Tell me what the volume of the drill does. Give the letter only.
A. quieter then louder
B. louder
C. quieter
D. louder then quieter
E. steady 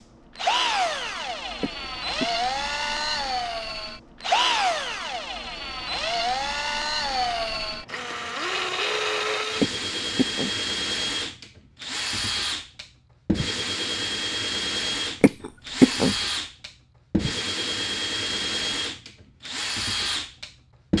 E.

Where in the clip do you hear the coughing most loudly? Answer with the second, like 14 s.
16 s.